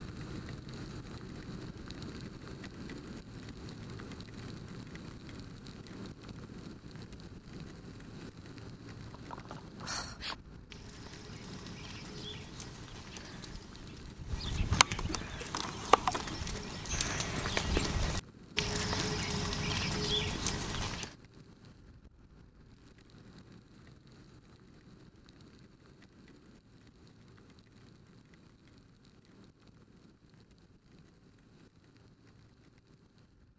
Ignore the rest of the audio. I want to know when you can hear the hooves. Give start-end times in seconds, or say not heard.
9.1-21.1.